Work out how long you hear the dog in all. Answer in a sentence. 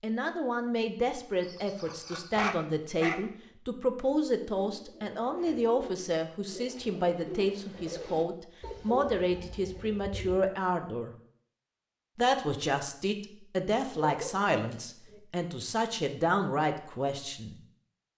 You can hear the dog for 3 seconds altogether.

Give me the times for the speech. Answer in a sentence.
You can hear the speech from 0.0 to 11.2 s and from 12.2 to 17.6 s.